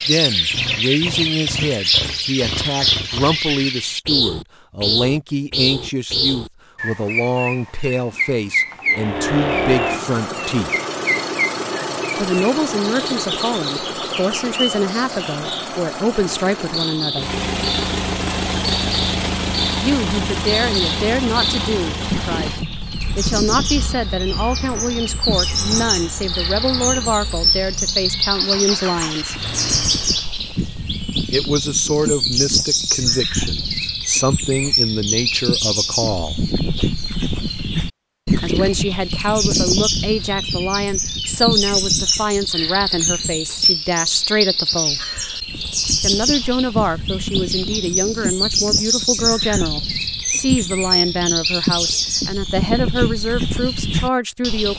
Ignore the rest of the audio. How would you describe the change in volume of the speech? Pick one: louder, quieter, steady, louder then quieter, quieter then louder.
steady.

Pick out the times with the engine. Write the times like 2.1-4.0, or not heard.
8.8-30.3.